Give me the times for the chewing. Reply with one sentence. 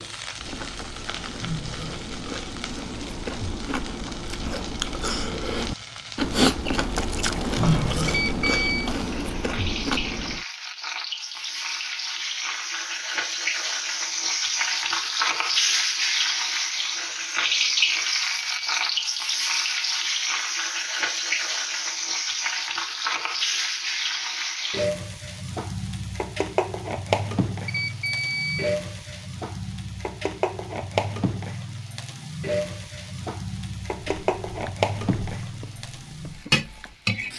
The chewing can be heard from 0.3 to 10.4 s and from 34.0 to 37.3 s.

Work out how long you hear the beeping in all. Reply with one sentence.
The beeping can be heard for 3 seconds in total.